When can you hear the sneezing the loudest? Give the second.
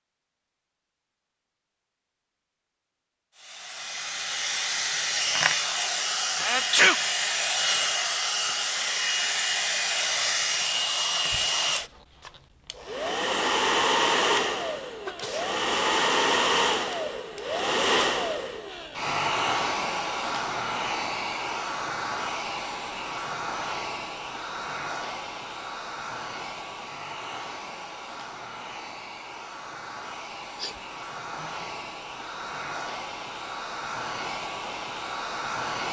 7 s.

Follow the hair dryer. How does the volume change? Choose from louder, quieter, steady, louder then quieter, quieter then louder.
quieter.